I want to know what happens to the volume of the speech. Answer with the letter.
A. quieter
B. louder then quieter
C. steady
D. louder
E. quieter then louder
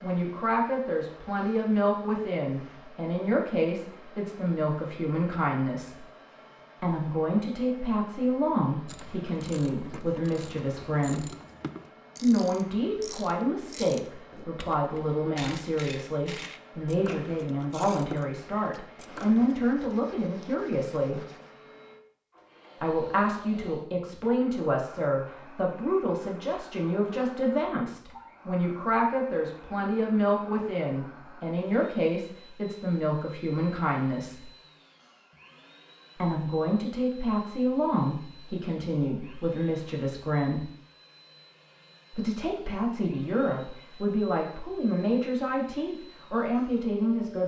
C.